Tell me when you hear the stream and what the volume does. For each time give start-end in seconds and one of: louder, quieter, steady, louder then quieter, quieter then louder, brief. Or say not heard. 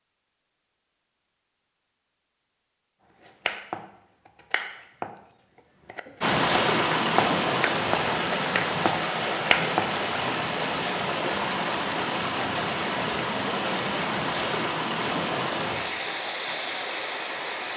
6.2-17.7 steady.